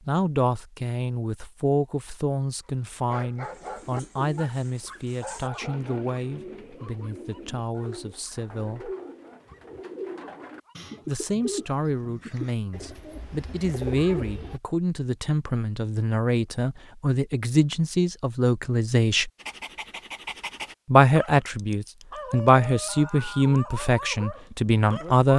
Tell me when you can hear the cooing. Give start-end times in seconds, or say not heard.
3.4-14.6.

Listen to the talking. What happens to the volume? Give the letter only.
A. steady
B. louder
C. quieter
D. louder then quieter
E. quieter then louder
E.